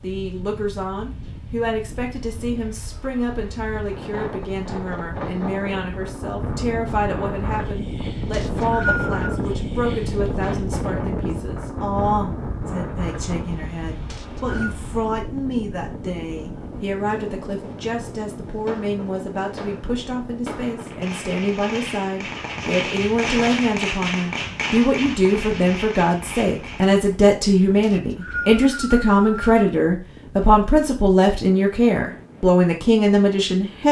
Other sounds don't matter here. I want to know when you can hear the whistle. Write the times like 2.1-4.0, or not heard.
8.3-9.3, 14.1-14.8, 27.8-29.6.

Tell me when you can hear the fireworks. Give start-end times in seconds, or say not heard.
17.7-27.0.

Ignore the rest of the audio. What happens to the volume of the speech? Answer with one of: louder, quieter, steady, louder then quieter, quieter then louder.
louder.